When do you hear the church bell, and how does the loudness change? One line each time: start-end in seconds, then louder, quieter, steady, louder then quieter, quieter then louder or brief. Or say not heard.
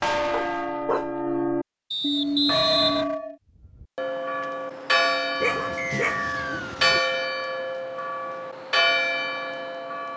0.0-10.1 steady.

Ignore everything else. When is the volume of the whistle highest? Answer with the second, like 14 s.
3 s.